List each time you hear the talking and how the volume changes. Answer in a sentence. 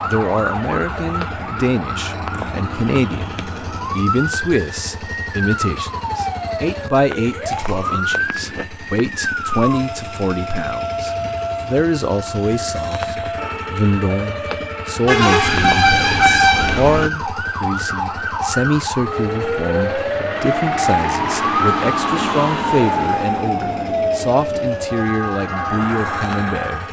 The talking can be heard from 0.0 to 26.8 s, at a steady volume.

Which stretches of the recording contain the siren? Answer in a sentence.
The siren can be heard from 0.0 to 26.8 s.